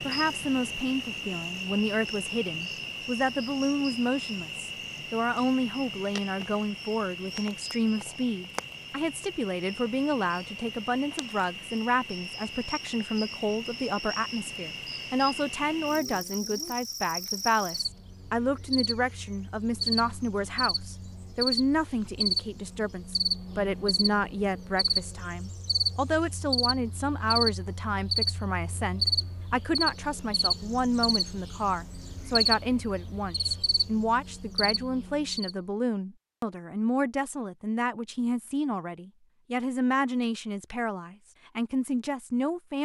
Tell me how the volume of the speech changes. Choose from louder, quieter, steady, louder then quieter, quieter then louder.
steady.